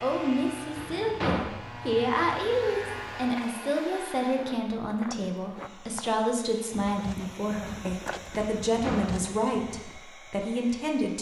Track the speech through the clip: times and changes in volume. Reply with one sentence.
You can hear the speech from 0.0 to 11.1 s, at a steady volume.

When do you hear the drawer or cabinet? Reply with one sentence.
The drawer or cabinet can be heard from 0.8 to 1.6 s and from 8.5 to 9.2 s.